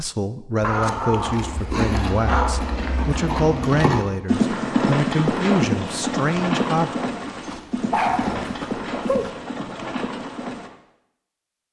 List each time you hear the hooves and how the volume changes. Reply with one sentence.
The hooves can be heard from 0.6 to 10.7 s, getting louder then quieter.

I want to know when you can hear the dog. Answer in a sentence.
The dog can be heard from 0.6 to 3.0 s and from 7.5 to 9.3 s.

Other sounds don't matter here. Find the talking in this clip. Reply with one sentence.
The talking can be heard from 0.0 to 7.0 s.